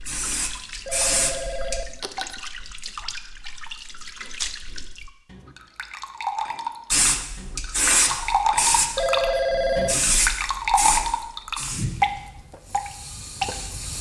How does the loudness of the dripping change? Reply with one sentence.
The loudness of the dripping goes up.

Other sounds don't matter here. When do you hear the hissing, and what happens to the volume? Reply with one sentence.
You can hear the hissing briefly from 0.0 to 1.8 s; and from 6.9 to 13.9 s, getting quieter.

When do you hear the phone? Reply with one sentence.
The phone can be heard from 0.8 to 2.4 s and from 8.9 to 9.9 s.